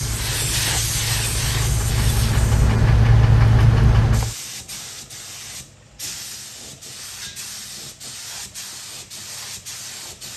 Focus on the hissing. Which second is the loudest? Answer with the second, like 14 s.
1 s.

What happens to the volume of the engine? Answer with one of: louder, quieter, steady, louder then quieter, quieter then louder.
louder.